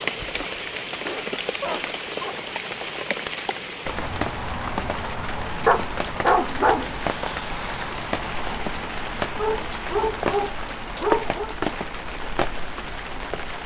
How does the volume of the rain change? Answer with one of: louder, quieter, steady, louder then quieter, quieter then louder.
steady.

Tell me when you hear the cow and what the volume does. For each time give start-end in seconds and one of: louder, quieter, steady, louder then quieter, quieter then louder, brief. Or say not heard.
not heard.